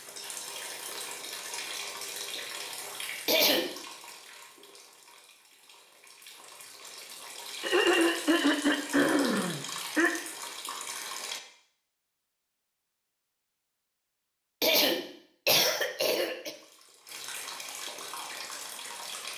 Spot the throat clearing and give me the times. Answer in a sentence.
The throat clearing can be heard from 3.2 to 3.8 s, from 7.6 to 10.2 s and from 14.6 to 16.5 s.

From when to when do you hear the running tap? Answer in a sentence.
You can hear the running tap from 0.0 to 11.4 s and from 16.4 to 19.3 s.